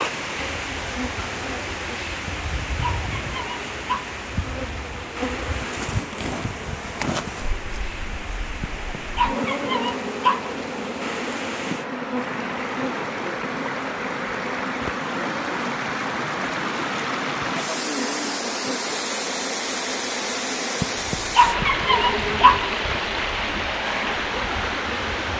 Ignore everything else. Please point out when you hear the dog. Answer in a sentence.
The dog can be heard from 2.2 to 4.2 s, from 8.6 to 10.6 s and from 20.8 to 22.7 s.